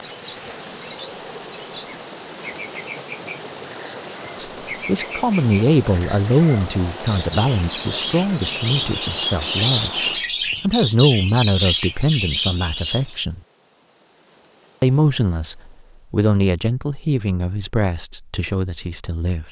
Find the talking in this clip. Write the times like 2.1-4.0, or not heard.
4.3-10.0, 10.6-13.4, 14.8-19.4.